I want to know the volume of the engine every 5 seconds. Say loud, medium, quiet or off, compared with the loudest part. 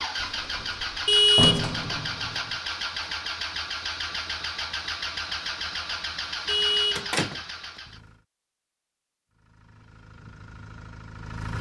loud, loud, medium.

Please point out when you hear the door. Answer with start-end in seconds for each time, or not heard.
0.2-2.6, 7.0-7.4.